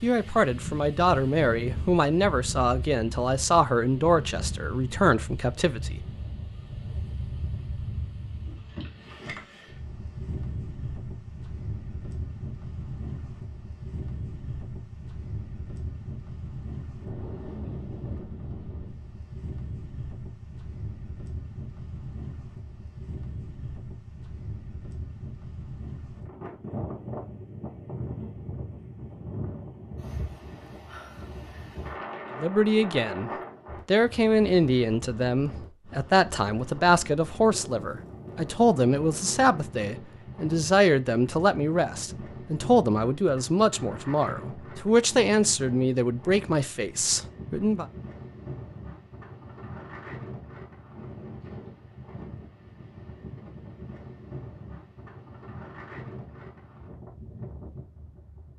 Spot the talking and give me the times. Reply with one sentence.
You can hear the talking from 0.0 to 6.0 s and from 32.4 to 47.9 s.